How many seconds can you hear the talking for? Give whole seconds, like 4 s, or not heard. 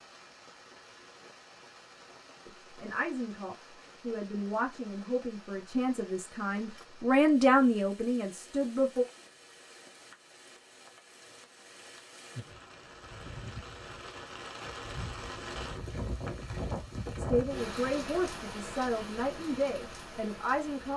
10 s.